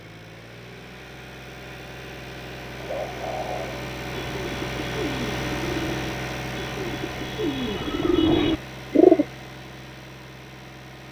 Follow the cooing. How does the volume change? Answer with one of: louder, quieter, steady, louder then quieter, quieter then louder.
louder.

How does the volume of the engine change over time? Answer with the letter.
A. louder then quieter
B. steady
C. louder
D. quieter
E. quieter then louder
A.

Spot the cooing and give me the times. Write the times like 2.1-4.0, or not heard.
2.8-9.2.